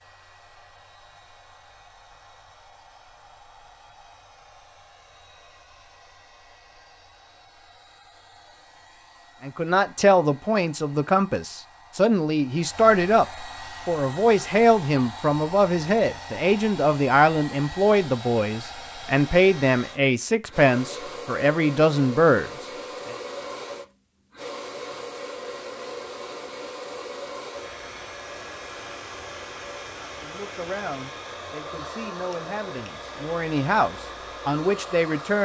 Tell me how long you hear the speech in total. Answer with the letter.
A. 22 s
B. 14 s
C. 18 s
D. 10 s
C.